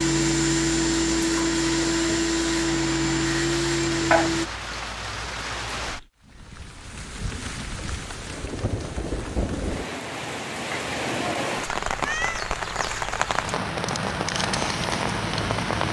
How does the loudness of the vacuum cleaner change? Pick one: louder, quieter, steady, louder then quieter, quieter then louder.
steady.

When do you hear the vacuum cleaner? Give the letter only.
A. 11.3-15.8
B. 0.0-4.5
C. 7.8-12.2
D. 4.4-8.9
B.